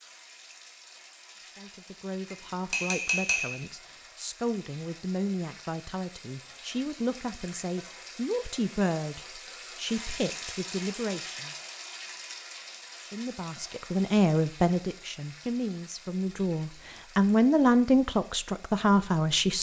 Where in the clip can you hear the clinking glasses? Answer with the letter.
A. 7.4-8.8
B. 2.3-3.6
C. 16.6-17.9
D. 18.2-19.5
B.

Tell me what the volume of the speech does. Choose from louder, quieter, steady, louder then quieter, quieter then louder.
louder.